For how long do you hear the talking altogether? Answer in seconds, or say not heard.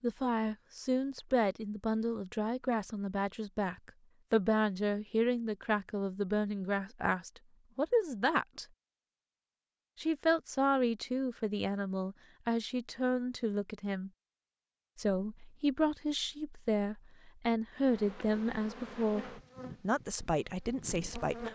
19 s.